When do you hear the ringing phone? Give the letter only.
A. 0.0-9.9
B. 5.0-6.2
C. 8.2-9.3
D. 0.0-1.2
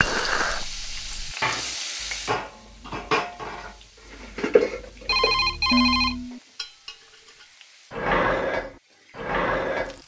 B.